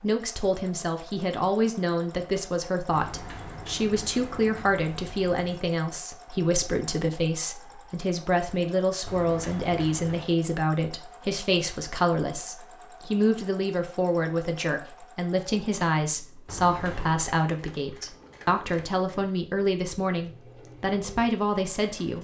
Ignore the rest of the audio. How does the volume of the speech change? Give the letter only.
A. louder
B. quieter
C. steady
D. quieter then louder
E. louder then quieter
C.